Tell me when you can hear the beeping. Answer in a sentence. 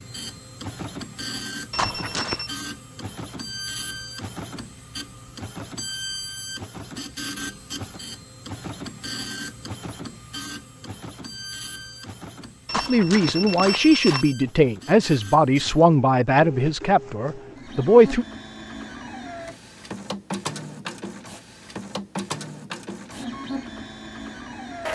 You can hear the beeping from 1.7 to 2.5 s and from 12.7 to 14.3 s.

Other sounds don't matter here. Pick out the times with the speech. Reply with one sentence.
You can hear the speech from 12.8 to 18.2 s.